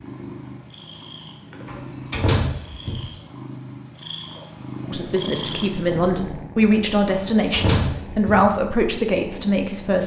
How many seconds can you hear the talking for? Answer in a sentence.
The talking can be heard for 5 seconds in total.